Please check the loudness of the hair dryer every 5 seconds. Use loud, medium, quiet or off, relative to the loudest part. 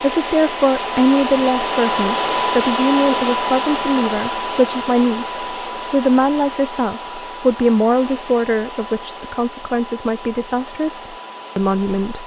loud, medium, quiet.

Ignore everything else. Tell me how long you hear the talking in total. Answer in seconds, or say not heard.
12 s.